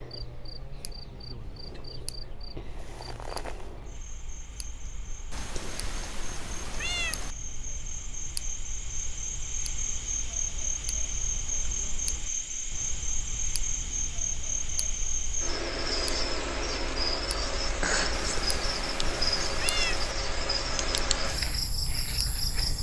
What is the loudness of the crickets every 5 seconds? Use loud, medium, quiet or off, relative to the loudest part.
quiet, medium, loud, loud, loud.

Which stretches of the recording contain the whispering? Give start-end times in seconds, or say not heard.
not heard.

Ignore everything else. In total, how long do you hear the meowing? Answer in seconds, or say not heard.
4 s.